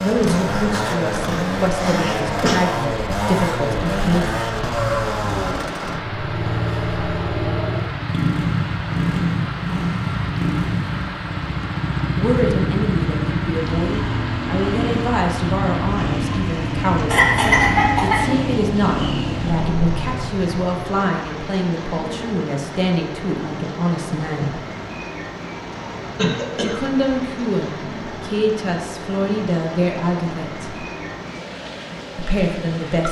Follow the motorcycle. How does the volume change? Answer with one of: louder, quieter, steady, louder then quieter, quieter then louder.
steady.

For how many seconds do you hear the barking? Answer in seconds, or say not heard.
not heard.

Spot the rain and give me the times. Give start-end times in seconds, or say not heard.
0.0-33.0.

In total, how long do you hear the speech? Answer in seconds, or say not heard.
22 s.